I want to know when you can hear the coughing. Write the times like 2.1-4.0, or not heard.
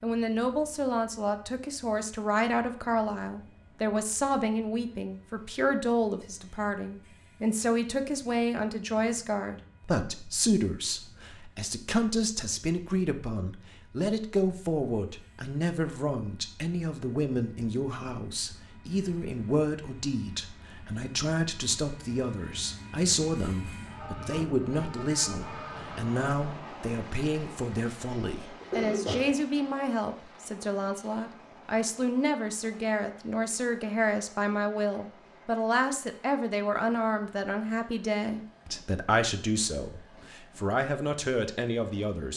28.2-29.4.